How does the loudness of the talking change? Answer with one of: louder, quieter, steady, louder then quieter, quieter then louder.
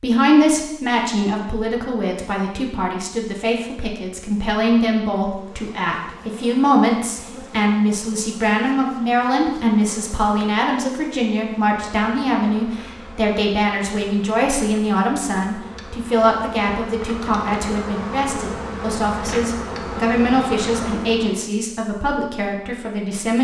steady.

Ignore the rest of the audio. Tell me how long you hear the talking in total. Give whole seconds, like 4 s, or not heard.
23 s.